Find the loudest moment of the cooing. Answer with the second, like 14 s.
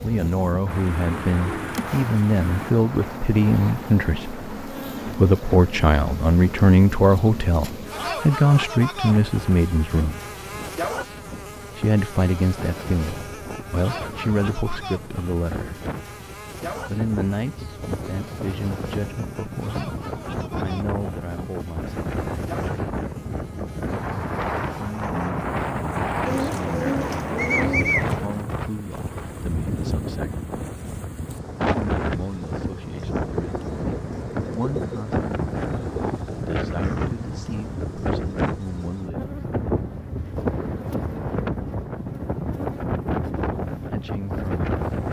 28 s.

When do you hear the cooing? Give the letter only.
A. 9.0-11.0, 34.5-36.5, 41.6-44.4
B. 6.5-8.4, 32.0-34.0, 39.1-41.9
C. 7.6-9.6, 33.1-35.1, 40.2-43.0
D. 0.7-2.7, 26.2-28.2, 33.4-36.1
D.